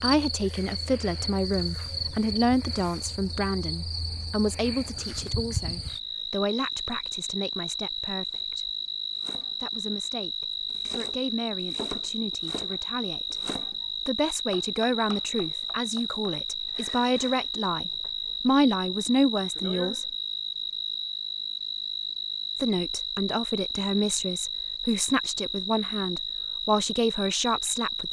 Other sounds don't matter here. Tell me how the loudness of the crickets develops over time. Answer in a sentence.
The volume of the crickets stays about the same.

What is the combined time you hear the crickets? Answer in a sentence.
You can hear the crickets for 28 seconds altogether.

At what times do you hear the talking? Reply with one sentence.
You can hear the talking from 0.0 to 8.7 s, from 9.6 to 13.3 s, from 14.1 to 20.1 s and from 22.6 to 28.0 s.